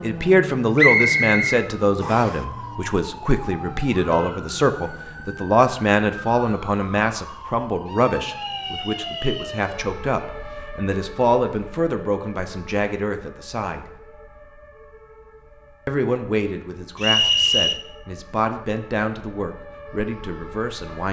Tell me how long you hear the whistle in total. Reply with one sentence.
You can hear the whistle for 4 seconds altogether.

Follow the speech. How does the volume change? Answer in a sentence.
The volume of the speech goes down.